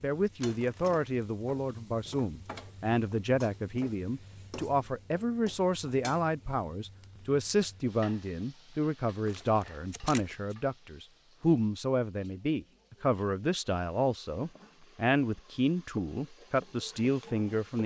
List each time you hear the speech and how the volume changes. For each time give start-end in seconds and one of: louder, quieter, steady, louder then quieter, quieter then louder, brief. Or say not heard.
0.0-17.8 steady.